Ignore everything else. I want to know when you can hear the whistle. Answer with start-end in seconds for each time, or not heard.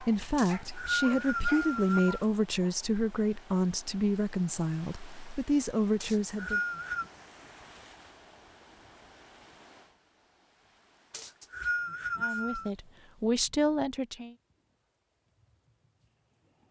0.3-2.2, 6.0-7.1, 11.1-12.7.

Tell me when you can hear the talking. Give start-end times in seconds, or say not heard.
0.0-6.6, 12.2-14.3.